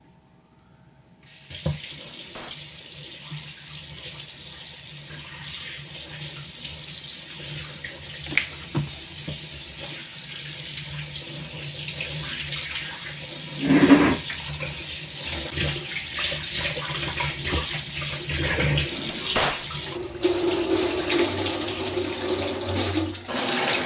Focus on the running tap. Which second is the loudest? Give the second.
14 s.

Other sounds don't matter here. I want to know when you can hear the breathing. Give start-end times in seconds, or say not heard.
not heard.